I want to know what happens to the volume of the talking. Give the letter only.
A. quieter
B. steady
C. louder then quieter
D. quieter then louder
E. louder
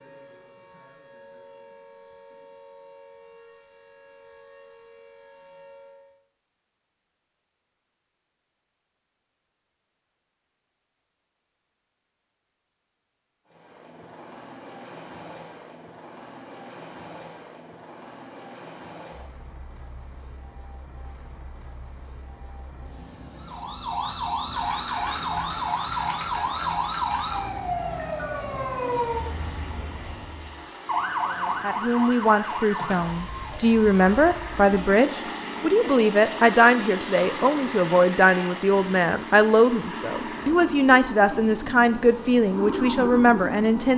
B.